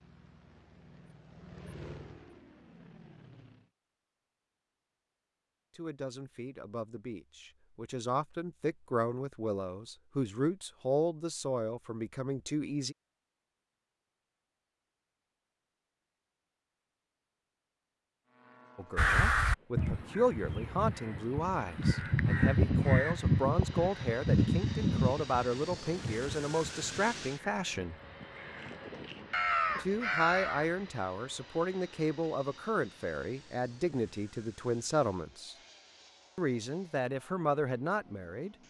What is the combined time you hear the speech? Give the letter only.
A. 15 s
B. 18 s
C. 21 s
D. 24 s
D.